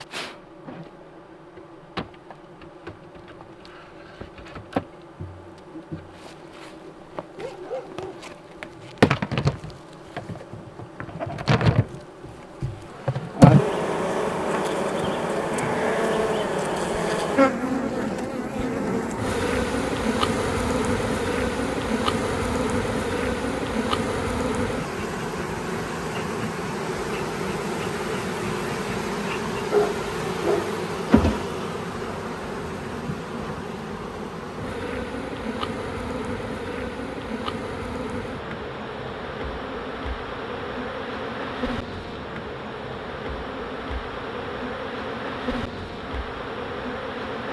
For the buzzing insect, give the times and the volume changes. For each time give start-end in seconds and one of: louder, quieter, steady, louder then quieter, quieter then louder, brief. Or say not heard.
0.0-47.4 louder then quieter.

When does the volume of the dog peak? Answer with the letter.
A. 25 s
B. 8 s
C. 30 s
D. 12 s
C.